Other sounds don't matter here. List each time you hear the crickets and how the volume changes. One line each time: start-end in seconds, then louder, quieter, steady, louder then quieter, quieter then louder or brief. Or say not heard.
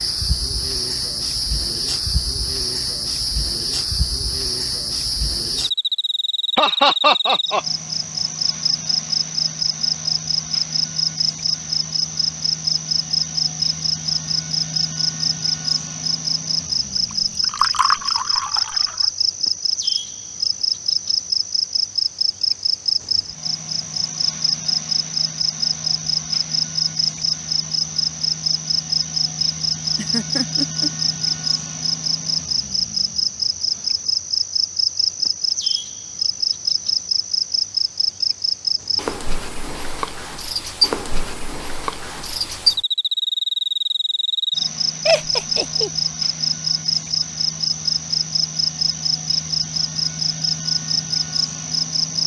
0.0-52.2 steady.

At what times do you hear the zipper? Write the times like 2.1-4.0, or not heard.
not heard.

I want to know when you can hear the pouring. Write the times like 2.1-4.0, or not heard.
17.1-19.1.